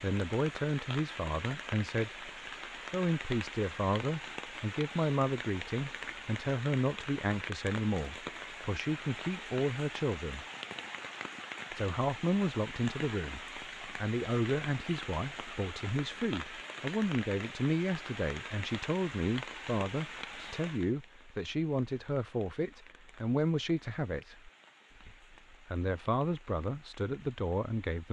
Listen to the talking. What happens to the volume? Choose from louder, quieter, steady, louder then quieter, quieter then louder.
steady.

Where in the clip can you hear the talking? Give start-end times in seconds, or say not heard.
0.0-10.4, 11.7-28.0.